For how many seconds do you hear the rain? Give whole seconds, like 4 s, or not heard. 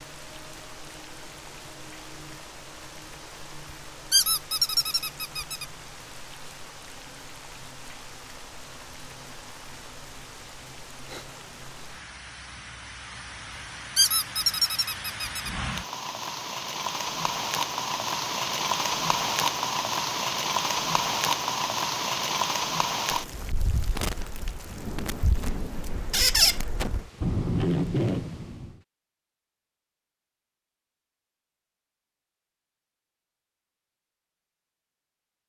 29 s.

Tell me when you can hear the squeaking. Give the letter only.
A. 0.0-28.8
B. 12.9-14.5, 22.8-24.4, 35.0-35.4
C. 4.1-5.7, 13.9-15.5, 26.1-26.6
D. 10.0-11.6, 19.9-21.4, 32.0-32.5
C.